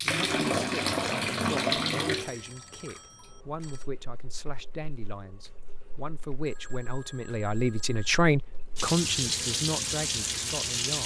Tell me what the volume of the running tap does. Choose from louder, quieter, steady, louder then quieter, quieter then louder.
quieter then louder.